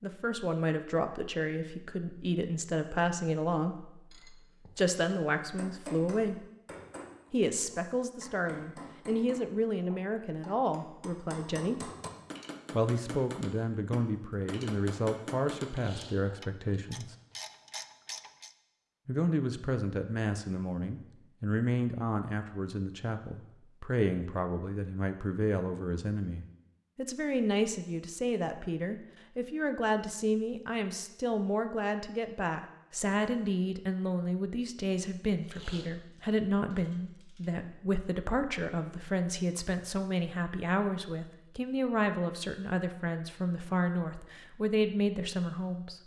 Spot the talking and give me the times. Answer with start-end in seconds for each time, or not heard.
0.0-6.5, 7.3-11.9, 12.7-17.1, 19.1-46.0.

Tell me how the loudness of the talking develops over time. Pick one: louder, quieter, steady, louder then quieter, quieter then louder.
steady.